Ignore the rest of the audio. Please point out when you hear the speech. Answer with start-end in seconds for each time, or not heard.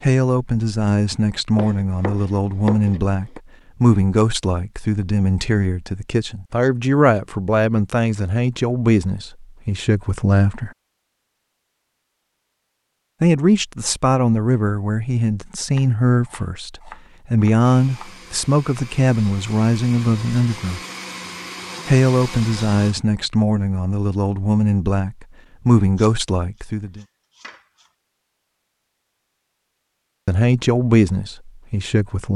0.0-10.7, 13.2-20.8, 21.9-27.1, 30.2-32.3.